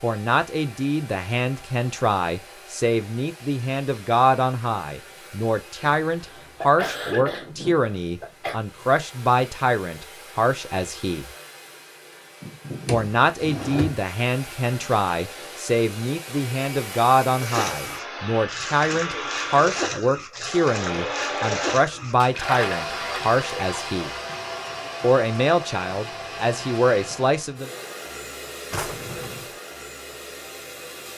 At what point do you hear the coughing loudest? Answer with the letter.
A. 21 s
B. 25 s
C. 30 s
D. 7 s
D.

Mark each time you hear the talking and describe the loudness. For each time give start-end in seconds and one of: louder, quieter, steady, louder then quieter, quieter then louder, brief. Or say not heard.
0.0-11.2 steady
12.9-24.1 steady
25.0-27.7 brief.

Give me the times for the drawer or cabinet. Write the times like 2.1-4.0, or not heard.
12.8-14.0, 28.7-29.5.